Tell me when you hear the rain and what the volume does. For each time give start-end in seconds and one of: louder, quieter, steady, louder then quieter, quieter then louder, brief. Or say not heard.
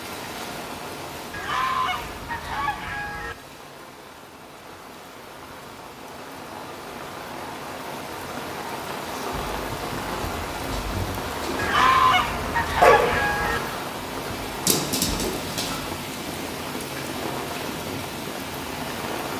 0.0-19.3 louder.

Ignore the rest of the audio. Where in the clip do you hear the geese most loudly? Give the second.
12 s.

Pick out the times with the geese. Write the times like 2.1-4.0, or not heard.
1.3-3.4, 11.6-13.6.